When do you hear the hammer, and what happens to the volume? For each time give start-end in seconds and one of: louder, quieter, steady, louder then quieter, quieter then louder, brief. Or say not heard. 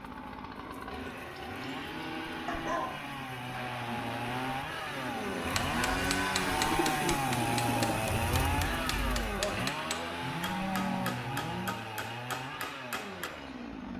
5.4-13.3 steady.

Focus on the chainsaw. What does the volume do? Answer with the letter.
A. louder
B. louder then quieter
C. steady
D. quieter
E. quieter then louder
B.